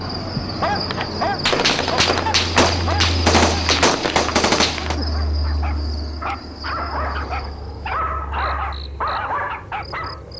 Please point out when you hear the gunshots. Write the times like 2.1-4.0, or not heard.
1.4-5.0.